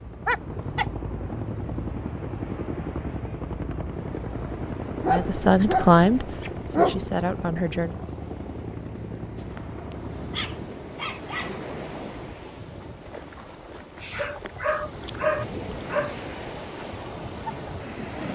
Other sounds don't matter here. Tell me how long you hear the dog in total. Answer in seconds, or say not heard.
7 s.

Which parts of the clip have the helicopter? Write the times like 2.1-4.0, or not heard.
0.0-10.8.